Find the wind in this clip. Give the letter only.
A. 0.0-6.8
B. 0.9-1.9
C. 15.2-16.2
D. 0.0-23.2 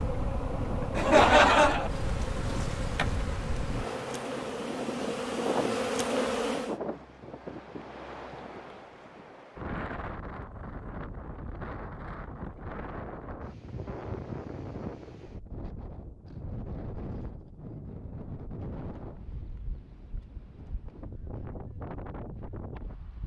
D.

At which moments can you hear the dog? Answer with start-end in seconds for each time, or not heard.
not heard.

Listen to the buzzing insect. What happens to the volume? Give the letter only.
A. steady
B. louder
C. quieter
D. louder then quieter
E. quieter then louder
B.